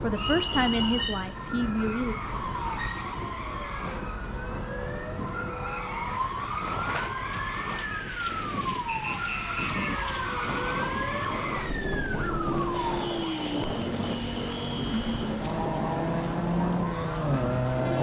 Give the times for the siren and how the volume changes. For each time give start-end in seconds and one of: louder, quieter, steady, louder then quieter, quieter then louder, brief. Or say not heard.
0.0-17.9 steady.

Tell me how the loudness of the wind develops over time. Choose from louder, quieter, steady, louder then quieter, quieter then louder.
louder.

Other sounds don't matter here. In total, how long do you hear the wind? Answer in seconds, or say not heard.
18 s.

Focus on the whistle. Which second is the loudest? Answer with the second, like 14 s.
1 s.